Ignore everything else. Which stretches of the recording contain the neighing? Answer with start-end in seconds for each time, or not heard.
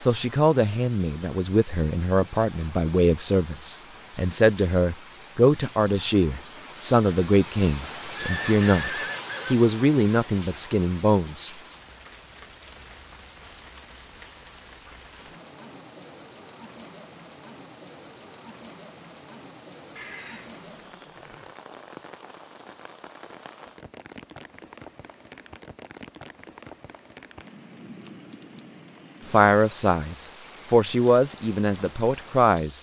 8.2-9.6, 19.9-21.6.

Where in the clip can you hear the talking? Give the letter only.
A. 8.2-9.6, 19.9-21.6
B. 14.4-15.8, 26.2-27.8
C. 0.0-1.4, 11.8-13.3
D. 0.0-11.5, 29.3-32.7
D.